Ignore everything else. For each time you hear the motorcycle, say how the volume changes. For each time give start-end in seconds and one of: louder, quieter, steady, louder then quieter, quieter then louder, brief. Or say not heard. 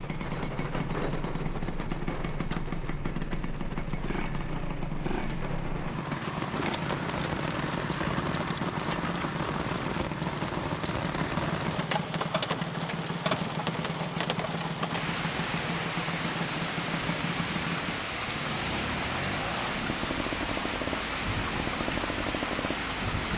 0.0-23.3 steady.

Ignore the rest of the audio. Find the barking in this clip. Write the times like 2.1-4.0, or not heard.
not heard.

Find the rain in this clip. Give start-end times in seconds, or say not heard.
0.0-23.3.